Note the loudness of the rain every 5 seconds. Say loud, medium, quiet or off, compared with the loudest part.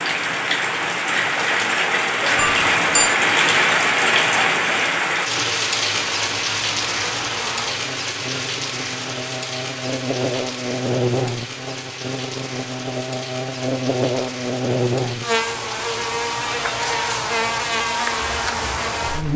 loud, medium, quiet, quiet.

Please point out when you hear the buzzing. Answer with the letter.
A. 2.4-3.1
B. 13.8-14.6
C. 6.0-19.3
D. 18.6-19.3
C.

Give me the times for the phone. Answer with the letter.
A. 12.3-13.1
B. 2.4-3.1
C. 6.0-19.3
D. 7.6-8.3
B.